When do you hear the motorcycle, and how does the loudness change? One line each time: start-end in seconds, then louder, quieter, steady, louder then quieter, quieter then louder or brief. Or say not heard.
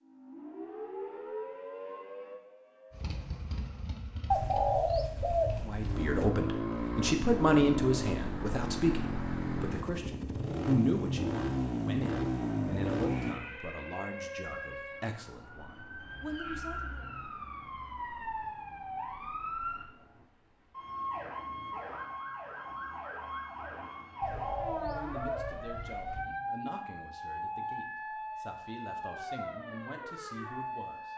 2.9-13.4 louder.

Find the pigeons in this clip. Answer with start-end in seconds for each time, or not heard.
4.3-6.3, 24.2-26.2.